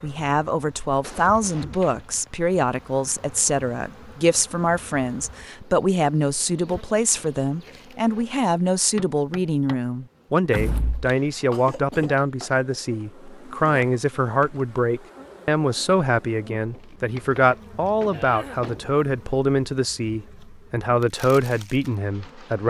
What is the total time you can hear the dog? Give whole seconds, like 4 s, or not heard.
not heard.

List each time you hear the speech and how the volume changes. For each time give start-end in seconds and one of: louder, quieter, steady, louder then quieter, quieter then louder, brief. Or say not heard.
0.0-22.6 steady.